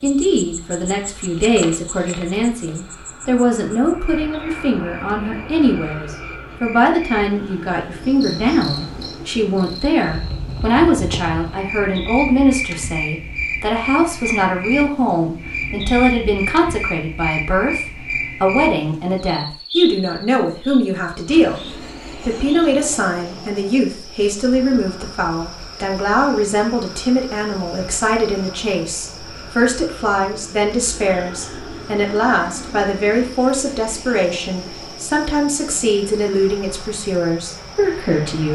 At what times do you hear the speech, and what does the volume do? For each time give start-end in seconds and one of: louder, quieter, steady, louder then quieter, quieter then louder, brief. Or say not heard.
0.0-38.5 steady.